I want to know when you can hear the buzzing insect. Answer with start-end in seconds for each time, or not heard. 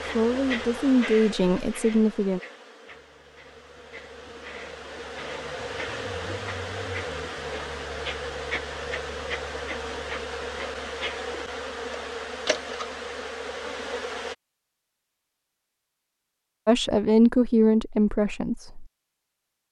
0.0-14.3.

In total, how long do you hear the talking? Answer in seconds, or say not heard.
5 s.